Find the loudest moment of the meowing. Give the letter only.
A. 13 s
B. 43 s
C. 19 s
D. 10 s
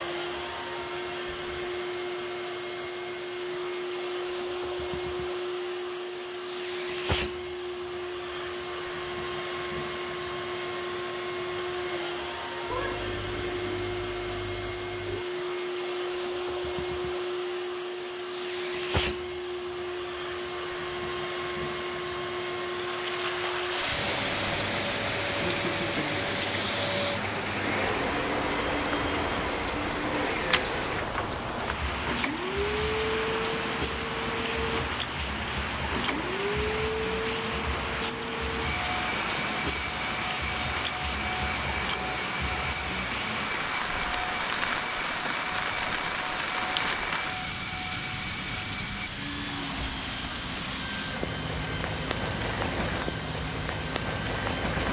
A.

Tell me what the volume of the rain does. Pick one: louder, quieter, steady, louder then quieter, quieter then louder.
steady.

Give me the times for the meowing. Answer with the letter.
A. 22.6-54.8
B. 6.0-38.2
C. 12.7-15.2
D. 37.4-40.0
C.